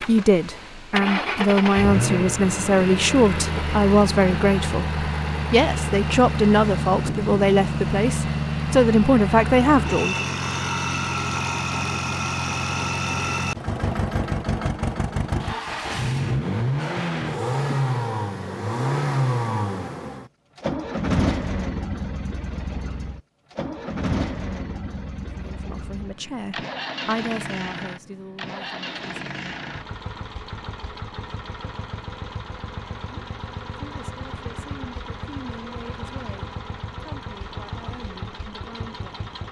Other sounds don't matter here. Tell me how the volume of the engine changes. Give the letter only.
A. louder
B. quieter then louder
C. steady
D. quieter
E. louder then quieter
D.